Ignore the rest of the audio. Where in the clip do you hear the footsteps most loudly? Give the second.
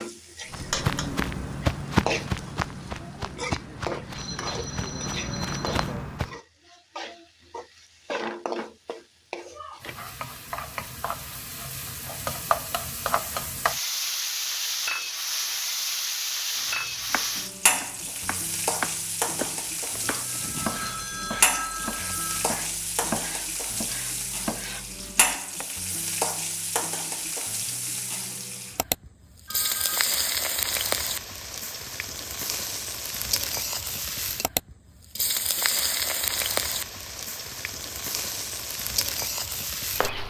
2 s.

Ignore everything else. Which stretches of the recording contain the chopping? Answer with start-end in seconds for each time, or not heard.
16.6-25.6.